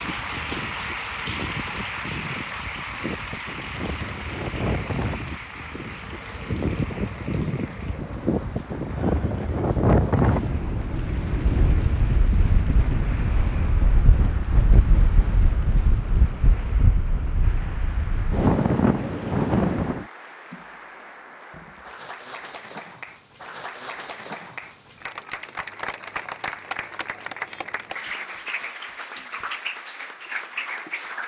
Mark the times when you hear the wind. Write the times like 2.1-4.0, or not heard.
0.0-20.1.